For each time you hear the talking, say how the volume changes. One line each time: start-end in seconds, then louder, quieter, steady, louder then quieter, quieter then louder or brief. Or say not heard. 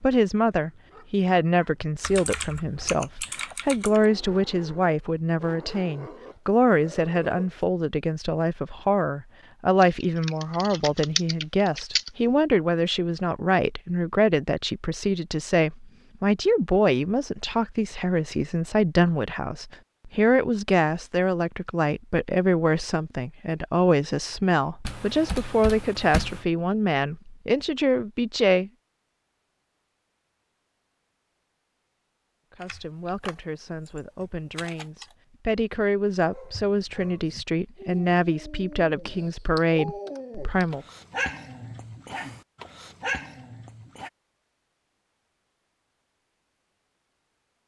0.0-28.7 steady
32.5-40.9 louder.